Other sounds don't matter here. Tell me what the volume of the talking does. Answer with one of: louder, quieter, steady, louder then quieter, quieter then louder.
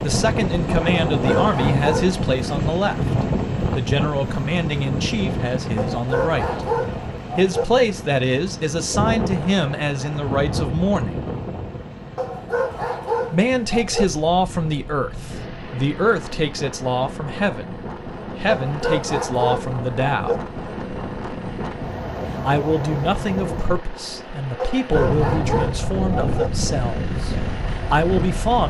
steady.